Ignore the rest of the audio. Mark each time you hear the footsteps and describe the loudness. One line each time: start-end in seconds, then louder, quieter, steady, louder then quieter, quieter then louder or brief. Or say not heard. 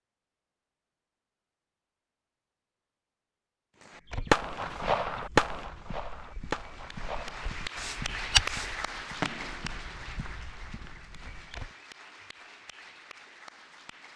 4.0-11.8 louder then quieter.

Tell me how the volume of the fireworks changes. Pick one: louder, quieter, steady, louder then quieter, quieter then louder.
quieter then louder.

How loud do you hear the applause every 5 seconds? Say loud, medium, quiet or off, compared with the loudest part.
off, loud, medium.